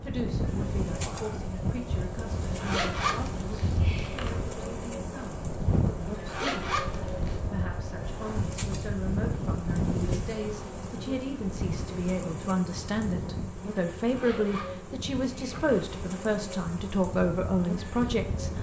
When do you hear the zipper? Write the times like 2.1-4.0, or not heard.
2.5-4.3, 6.2-7.4, 14.1-15.7.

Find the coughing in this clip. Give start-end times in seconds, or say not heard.
not heard.